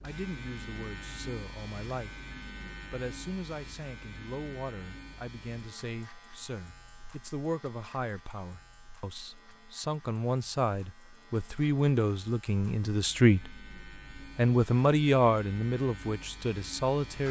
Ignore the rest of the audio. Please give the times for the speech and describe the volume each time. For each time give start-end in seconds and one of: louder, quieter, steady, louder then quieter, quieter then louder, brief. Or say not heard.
0.0-2.2 brief
2.9-13.6 louder
14.3-17.2 brief.